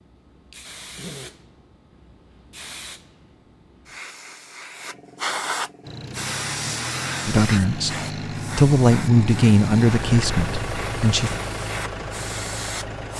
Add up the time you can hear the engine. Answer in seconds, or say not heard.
7 s.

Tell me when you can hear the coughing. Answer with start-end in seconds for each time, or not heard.
0.9-1.4.